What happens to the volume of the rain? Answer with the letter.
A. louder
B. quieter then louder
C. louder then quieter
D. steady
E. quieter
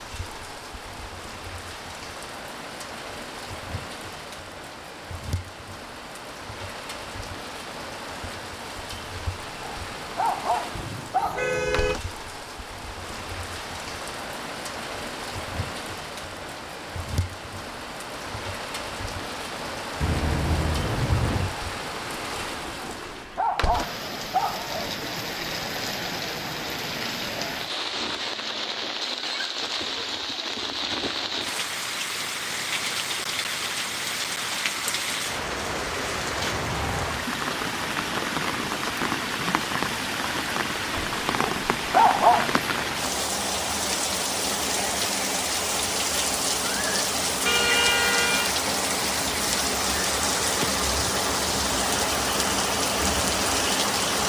A.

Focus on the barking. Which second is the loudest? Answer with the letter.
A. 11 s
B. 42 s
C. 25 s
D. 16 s
B.